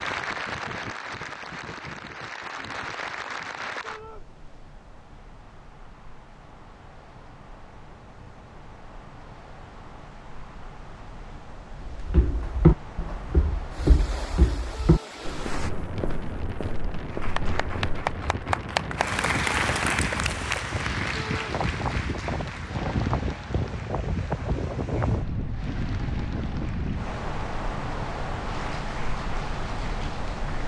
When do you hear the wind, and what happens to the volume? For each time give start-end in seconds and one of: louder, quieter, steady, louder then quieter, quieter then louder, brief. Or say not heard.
0.0-30.6 louder.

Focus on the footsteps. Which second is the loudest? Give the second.
13 s.